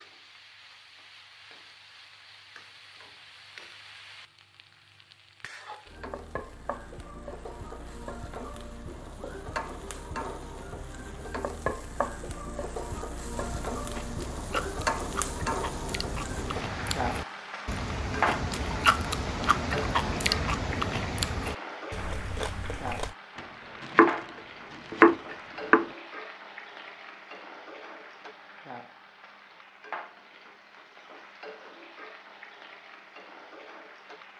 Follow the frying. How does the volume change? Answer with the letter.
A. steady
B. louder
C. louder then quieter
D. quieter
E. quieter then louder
C.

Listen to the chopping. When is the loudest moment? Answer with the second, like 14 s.
25 s.